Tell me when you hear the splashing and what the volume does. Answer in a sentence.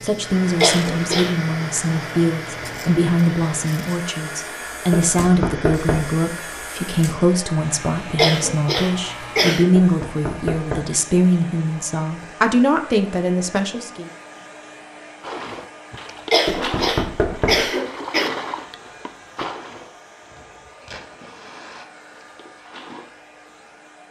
You can hear the splashing from 15.2 to 23.2 s, getting quieter.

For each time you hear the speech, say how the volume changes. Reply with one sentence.
The speech can be heard from 0.0 to 14.1 s, at a steady volume.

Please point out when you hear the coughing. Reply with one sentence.
The coughing can be heard from 0.6 to 1.4 s, from 8.2 to 9.7 s and from 16.3 to 18.3 s.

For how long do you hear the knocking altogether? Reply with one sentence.
The knocking can be heard for 4 seconds in total.